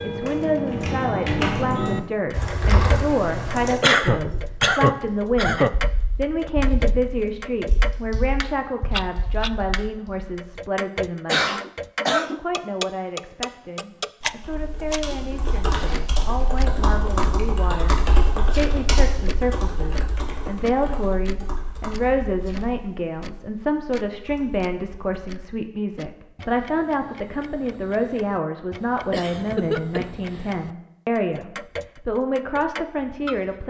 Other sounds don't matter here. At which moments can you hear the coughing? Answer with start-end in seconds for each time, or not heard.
3.8-5.7, 11.2-12.4, 29.1-30.5.